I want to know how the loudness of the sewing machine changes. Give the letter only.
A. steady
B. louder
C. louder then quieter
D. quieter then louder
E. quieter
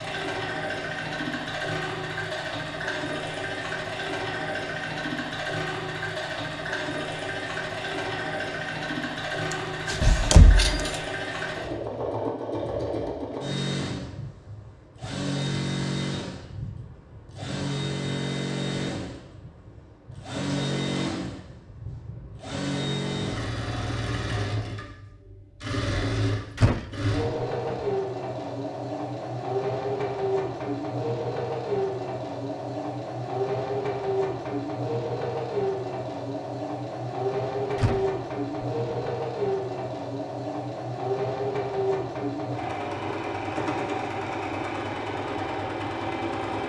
A.